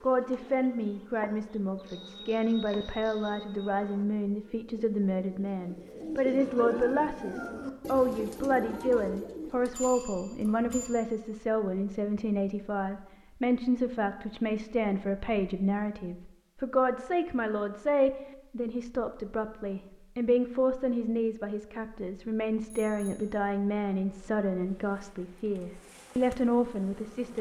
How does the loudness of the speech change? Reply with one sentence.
The volume of the speech stays about the same.